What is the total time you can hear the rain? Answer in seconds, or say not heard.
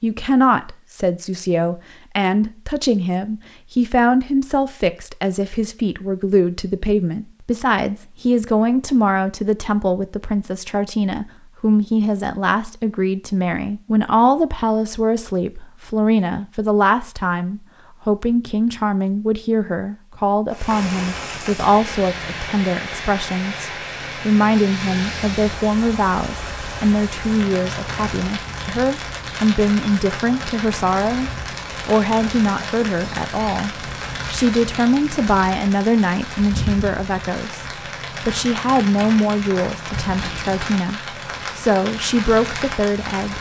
23 s.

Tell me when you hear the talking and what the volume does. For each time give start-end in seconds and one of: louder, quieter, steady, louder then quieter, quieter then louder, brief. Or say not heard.
0.0-43.3 steady.